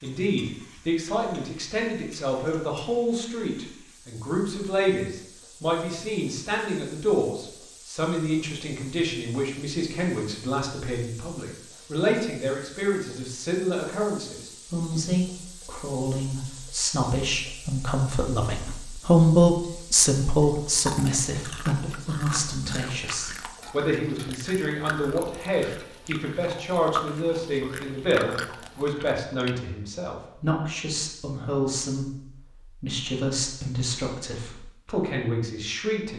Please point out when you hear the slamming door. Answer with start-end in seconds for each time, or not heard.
not heard.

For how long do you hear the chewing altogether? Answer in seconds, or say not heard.
9 s.